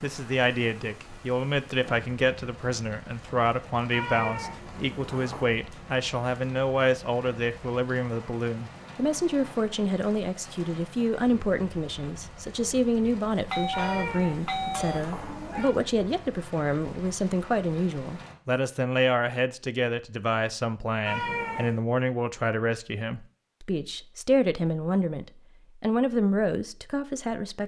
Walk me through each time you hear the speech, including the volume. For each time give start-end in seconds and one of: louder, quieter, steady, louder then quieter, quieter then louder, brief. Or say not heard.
0.0-27.6 steady.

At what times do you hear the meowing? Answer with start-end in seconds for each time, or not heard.
3.9-5.5, 13.7-15.7, 21.1-21.8.